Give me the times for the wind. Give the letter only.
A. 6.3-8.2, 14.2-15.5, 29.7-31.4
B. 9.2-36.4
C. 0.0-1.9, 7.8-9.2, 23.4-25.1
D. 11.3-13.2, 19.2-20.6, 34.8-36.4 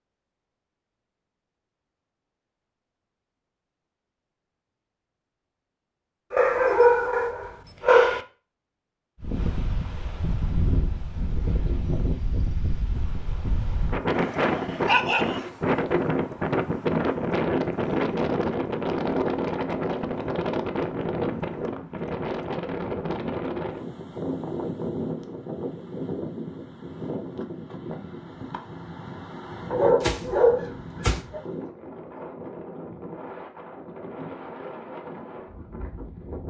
B.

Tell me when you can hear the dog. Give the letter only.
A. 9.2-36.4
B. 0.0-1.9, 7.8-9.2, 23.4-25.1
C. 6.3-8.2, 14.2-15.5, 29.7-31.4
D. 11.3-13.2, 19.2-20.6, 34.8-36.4
C.